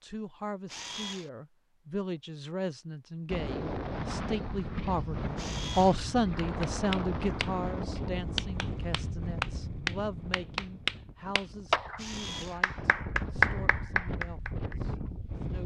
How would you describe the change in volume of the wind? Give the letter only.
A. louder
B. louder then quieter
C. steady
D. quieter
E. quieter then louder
E.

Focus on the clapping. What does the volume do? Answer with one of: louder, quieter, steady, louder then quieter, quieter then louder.
louder.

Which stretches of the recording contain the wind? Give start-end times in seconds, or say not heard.
3.2-15.6.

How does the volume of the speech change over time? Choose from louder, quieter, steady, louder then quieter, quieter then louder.
louder then quieter.